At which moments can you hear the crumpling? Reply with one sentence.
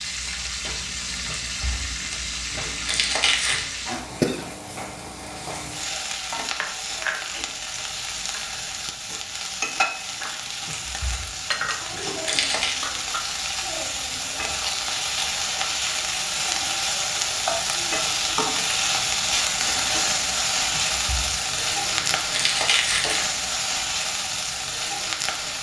You can hear the crumpling from 1.2 to 3.6 s, from 10.7 to 12.8 s and from 20.7 to 23.2 s.